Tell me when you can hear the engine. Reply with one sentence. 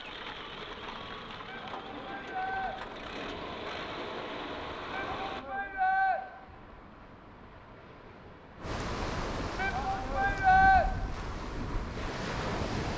You can hear the engine from 0.0 to 5.5 s.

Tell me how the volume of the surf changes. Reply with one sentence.
The loudness of the surf goes up.